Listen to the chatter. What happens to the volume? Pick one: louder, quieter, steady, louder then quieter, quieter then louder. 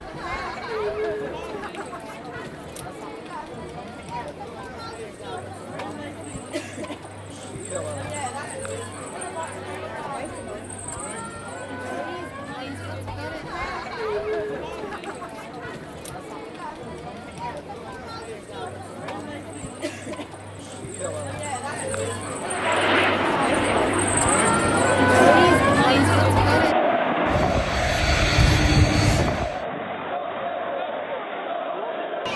louder.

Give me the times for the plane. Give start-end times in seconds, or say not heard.
22.4-29.6.